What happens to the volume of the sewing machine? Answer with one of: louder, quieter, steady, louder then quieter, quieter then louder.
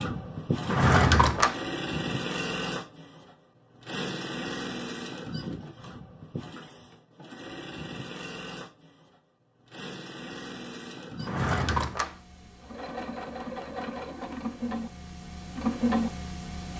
quieter then louder.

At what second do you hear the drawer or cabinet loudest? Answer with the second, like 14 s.
1 s.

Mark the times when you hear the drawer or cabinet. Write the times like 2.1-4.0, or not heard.
0.6-1.6, 11.2-12.2.